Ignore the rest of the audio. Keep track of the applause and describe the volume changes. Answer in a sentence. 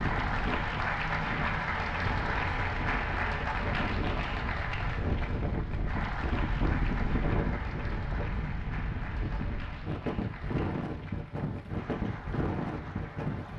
The volume of the applause goes down.